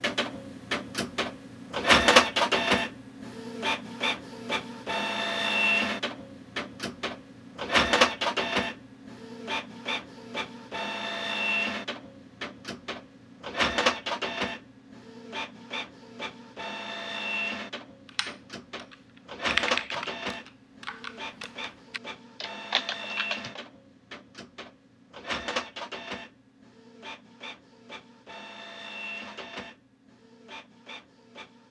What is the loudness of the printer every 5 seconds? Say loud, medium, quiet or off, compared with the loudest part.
loud, loud, medium, medium, quiet, quiet, quiet.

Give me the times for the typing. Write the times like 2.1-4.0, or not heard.
18.1-23.6.